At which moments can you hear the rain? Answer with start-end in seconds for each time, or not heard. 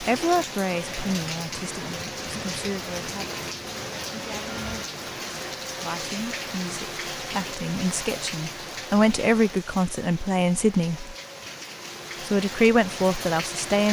0.0-13.8.